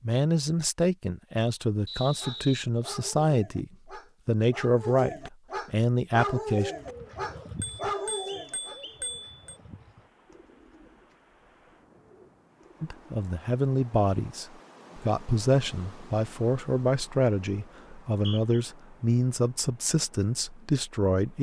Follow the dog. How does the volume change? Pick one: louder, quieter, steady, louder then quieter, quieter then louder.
louder.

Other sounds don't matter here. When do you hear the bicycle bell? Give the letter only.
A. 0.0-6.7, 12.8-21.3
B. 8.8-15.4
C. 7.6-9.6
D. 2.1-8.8
C.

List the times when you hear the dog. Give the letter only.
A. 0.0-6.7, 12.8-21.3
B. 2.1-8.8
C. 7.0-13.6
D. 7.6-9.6
B.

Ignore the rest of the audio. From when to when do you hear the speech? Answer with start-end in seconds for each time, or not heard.
0.0-6.7, 12.8-21.3.